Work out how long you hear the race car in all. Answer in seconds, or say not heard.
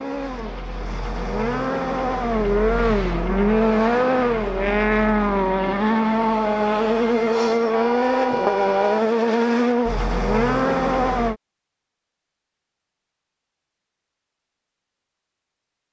11 s.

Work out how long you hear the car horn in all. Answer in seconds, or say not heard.
2 s.